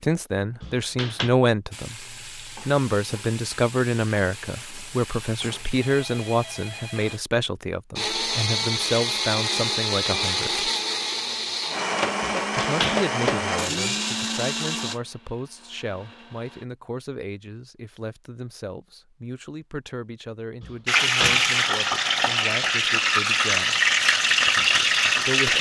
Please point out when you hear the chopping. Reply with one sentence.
The chopping can't be heard in this clip.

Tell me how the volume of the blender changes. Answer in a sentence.
The loudness of the blender goes down.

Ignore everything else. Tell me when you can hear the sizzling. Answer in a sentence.
You can hear the sizzling from 1.7 to 7.2 s and from 20.9 to 25.5 s.